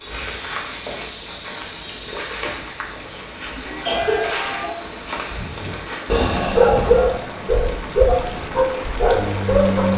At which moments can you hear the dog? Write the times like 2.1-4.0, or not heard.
5.5-9.9.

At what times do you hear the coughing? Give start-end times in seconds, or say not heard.
3.5-4.8.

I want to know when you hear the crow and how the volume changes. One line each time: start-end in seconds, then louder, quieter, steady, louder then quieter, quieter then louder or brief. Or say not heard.
not heard.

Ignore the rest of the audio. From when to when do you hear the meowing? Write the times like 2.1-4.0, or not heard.
3.6-4.8.